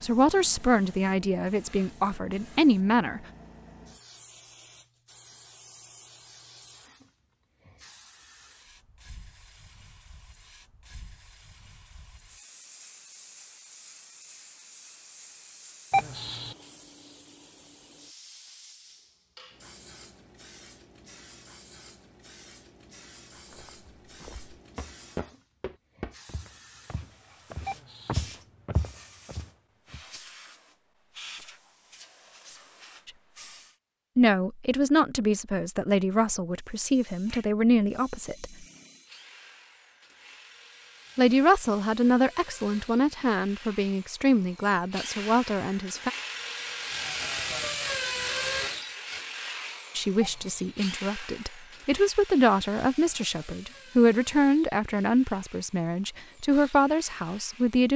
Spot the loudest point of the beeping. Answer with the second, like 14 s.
16 s.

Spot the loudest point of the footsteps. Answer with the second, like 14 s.
28 s.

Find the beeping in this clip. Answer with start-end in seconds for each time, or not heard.
15.9-16.6, 27.6-28.2, 50.2-50.8.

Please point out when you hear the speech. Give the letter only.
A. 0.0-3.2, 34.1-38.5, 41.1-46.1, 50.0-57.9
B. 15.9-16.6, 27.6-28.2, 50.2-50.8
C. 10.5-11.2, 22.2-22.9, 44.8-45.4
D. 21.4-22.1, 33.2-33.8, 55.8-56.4
A.